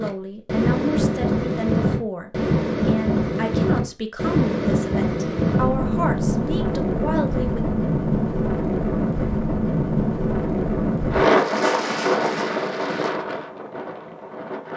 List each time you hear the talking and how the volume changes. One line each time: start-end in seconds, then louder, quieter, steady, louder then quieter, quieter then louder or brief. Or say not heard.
0.0-7.7 steady.